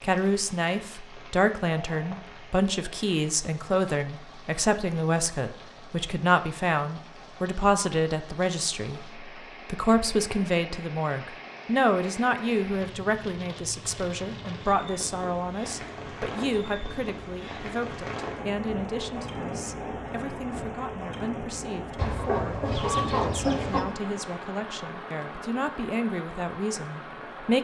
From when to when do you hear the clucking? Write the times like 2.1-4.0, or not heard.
21.9-23.9.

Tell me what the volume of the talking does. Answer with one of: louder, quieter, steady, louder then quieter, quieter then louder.
quieter.